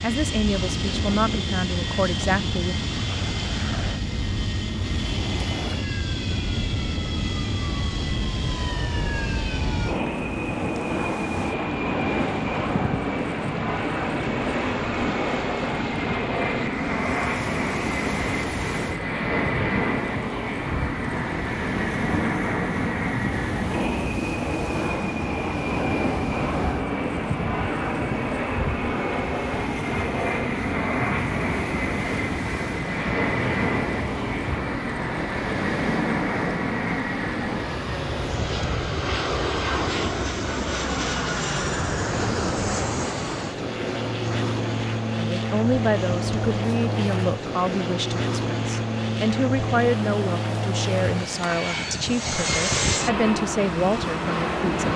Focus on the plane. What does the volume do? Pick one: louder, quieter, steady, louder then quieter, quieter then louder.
steady.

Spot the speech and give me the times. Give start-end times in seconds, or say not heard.
0.0-2.9, 45.1-54.9.